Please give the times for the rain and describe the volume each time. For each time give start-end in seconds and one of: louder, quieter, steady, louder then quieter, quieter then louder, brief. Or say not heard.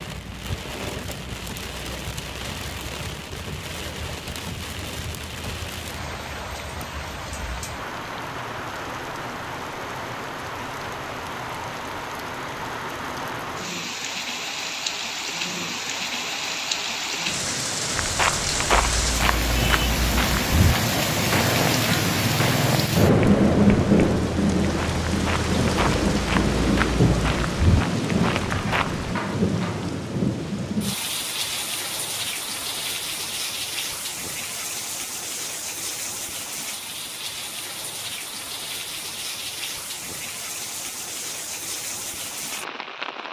0.0-43.2 louder then quieter.